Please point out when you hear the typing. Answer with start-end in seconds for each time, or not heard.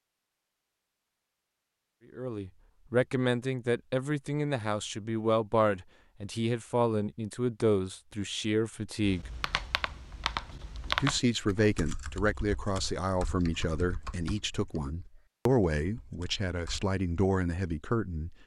9.0-16.9.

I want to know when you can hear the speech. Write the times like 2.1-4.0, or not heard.
2.1-9.3, 10.9-18.4.